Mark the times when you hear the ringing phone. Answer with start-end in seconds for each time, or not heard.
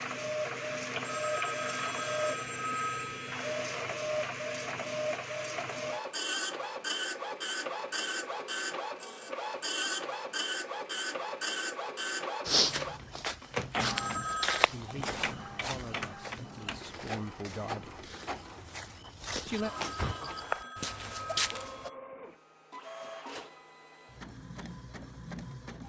1.0-3.4, 13.9-14.7, 19.6-21.9.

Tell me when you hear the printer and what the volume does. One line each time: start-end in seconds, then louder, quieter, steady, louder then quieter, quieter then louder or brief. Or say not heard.
0.0-25.8 quieter.